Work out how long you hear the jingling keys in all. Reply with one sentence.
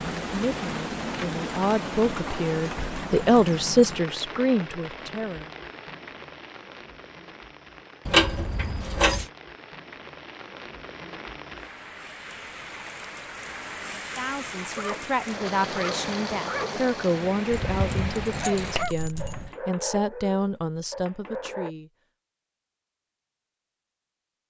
You can hear the jingling keys for 3 seconds altogether.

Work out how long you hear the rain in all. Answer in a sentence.
You can hear the rain for 19 seconds altogether.